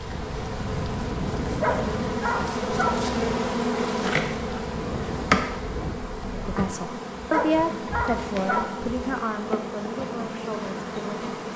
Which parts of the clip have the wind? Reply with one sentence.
You can hear the wind from 0.0 to 6.6 s.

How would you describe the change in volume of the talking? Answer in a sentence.
The volume of the talking goes down.